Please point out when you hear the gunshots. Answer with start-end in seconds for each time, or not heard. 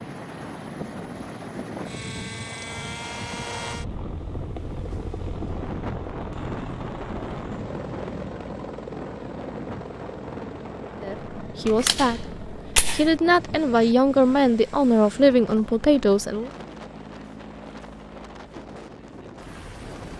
11.7-13.2.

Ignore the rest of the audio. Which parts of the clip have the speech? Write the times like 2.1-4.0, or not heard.
11.0-16.5.